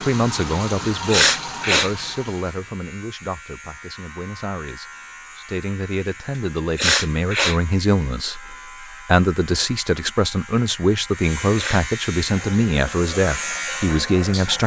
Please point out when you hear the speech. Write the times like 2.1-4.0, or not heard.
0.0-14.6.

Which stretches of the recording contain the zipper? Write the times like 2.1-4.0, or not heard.
not heard.